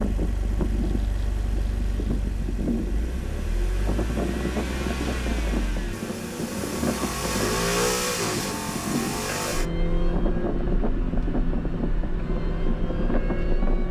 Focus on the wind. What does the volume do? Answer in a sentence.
The volume of the wind stays about the same.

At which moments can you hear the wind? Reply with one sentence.
The wind can be heard from 0.0 to 13.8 s.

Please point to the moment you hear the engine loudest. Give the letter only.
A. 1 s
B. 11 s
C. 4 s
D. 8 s
D.